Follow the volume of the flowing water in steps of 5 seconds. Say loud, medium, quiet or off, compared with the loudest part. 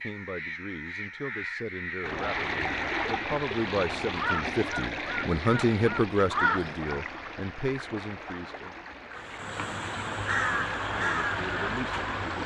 loud, medium, medium.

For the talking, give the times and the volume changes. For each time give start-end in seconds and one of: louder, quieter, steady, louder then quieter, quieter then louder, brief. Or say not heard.
0.0-8.8 louder then quieter
10.9-12.4 brief.